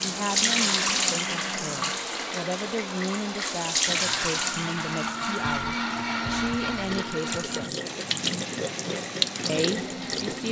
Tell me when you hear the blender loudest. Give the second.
6 s.